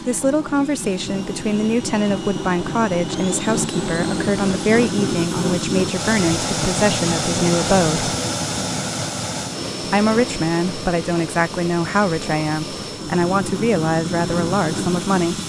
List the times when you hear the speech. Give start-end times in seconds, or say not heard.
0.1-8.1, 9.9-15.4.